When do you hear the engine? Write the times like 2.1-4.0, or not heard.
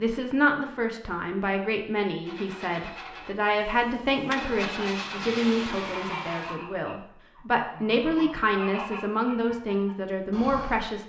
2.2-6.6.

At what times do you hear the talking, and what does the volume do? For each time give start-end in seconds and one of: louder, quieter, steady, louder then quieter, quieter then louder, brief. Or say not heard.
0.0-11.0 steady.